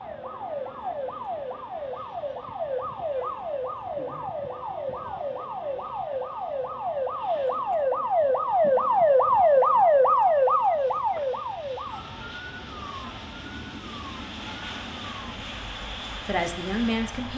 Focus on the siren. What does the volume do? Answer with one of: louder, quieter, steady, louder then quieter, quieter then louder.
louder then quieter.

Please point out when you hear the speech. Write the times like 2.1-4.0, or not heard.
15.8-17.3.